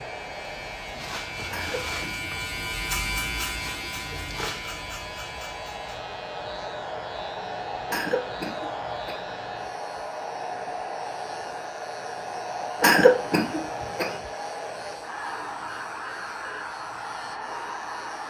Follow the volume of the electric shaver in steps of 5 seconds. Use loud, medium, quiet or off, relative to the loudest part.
loud, medium, quiet, quiet.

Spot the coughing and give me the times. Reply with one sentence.
The coughing can be heard from 1.5 to 2.3 s, from 7.8 to 9.2 s and from 12.8 to 14.2 s.